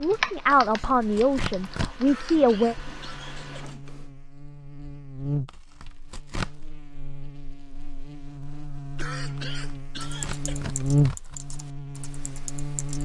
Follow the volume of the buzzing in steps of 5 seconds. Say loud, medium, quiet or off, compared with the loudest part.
quiet, medium, loud.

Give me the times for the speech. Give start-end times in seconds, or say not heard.
0.0-2.8.